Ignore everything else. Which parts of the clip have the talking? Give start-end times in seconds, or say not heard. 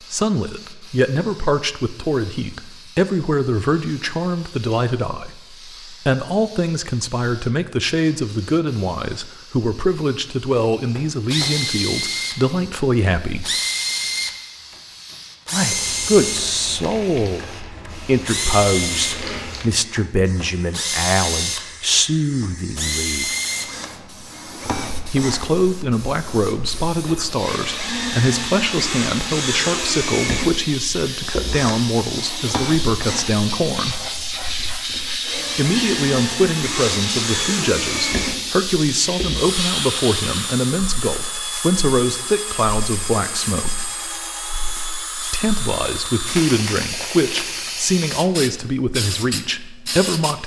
0.1-13.5, 15.5-23.3, 25.1-34.0, 35.5-43.8, 45.3-50.4.